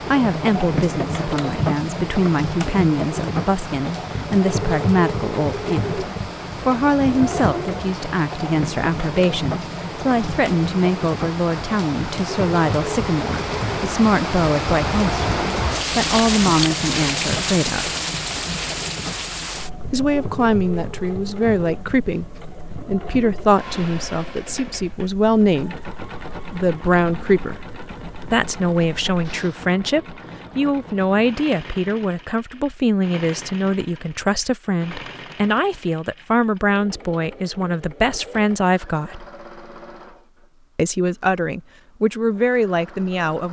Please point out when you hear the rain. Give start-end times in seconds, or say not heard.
0.0-29.6.